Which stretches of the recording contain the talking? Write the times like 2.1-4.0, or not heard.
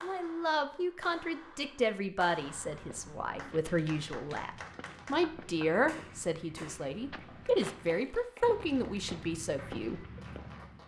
0.0-10.0.